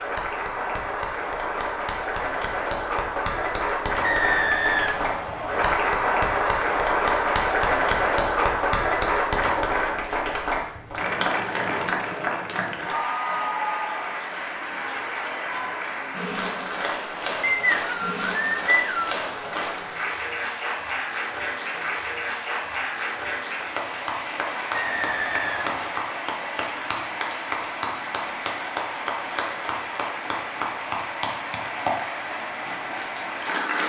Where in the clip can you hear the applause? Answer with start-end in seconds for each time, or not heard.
0.0-33.8.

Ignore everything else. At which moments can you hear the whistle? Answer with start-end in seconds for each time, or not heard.
4.0-5.8, 17.4-19.2, 24.7-25.9.